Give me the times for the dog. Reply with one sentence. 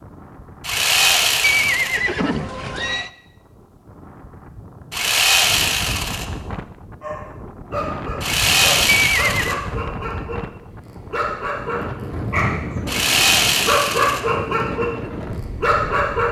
You can hear the dog from 7.0 to 12.9 s and from 13.7 to 16.2 s.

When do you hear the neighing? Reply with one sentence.
The neighing can be heard from 1.4 to 3.1 s and from 8.9 to 9.6 s.